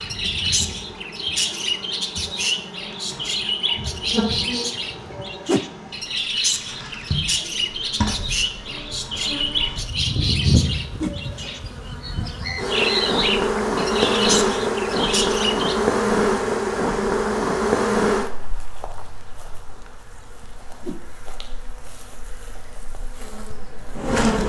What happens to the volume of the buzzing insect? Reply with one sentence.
The volume of the buzzing insect goes up, then down.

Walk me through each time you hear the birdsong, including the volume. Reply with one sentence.
The birdsong can be heard from 0.0 to 15.8 s, at a steady volume.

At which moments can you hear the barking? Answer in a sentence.
You can't hear the barking here.